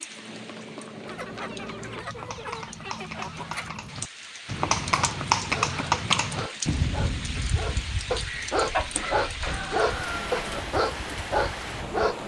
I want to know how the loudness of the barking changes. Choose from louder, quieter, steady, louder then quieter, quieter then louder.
louder.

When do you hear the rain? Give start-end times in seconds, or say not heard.
0.0-12.2.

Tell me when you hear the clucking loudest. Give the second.
9 s.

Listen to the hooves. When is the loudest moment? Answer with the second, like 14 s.
5 s.